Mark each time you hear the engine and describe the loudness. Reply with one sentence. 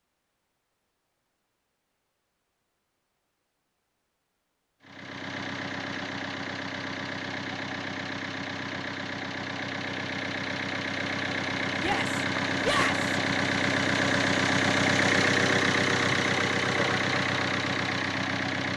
The engine can be heard from 4.8 to 18.7 s, getting louder.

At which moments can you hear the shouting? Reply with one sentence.
You can hear the shouting from 11.8 to 13.1 s.